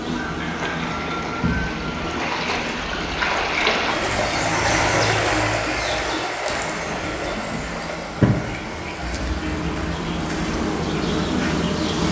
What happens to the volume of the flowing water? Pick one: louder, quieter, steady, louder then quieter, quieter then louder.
louder then quieter.